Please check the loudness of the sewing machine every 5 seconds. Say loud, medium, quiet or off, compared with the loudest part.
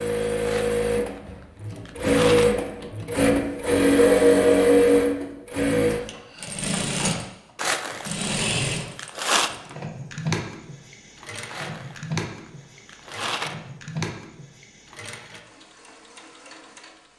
loud, medium, quiet, quiet.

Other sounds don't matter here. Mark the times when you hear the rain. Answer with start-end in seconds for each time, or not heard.
not heard.